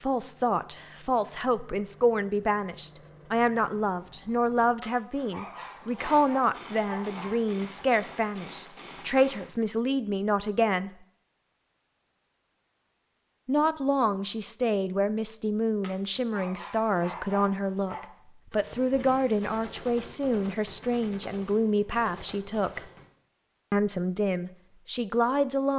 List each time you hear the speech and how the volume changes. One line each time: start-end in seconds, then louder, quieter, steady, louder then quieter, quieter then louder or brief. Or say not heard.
0.0-10.9 steady
13.4-22.8 steady
23.7-25.7 brief.